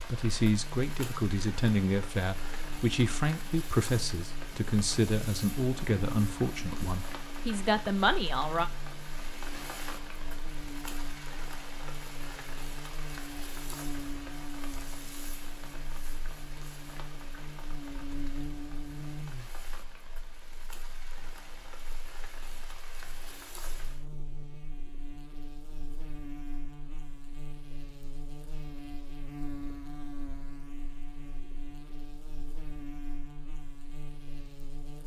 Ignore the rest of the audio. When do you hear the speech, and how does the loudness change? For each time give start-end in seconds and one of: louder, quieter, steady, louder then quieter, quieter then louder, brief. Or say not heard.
0.0-8.7 steady.